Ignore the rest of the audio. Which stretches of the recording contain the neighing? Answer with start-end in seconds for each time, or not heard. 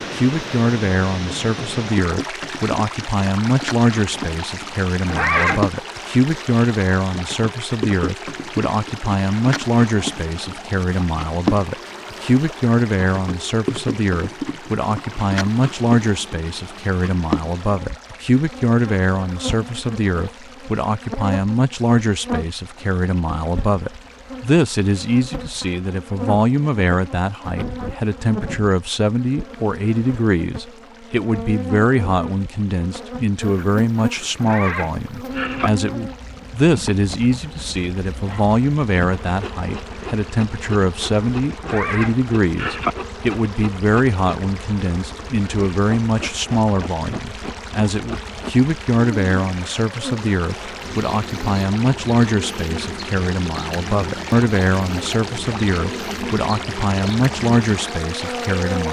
5.0-5.8, 34.4-35.7, 41.6-43.0.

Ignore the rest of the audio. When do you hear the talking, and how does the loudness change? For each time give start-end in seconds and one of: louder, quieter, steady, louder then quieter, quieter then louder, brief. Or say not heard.
0.0-58.8 steady.